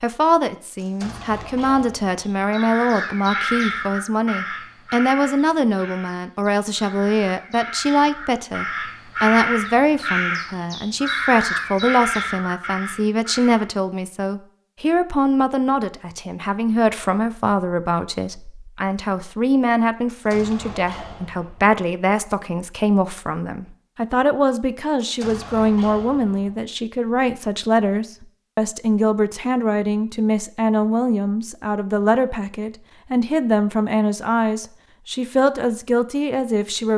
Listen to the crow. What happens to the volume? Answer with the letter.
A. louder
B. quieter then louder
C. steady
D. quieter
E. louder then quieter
B.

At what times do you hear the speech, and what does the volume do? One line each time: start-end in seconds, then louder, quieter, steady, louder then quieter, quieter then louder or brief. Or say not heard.
0.0-36.9 steady.